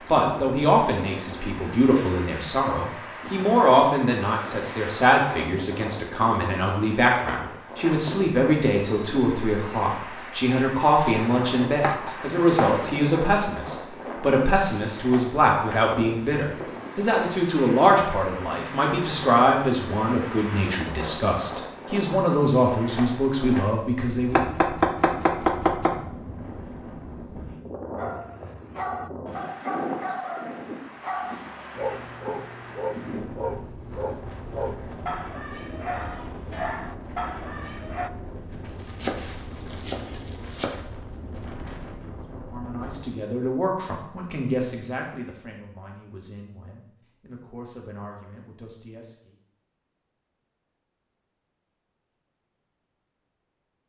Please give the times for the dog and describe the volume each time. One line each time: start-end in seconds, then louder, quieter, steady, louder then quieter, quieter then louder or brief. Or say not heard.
27.9-38.1 steady.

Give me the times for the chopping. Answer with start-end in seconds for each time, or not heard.
11.8-12.8, 24.3-25.9, 39.0-40.8.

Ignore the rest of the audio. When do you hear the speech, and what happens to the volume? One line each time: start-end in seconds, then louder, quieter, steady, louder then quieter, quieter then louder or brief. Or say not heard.
0.1-24.6 steady
42.3-49.4 quieter.